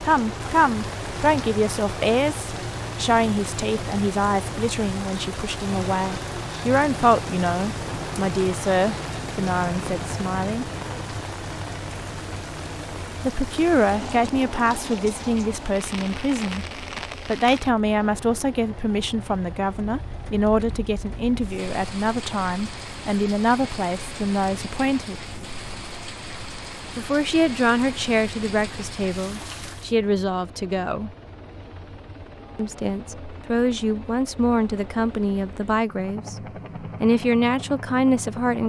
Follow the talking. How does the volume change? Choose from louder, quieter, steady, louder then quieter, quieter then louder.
steady.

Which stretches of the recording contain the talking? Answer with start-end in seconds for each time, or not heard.
0.0-10.7, 13.2-25.1, 26.9-31.1, 32.5-38.6.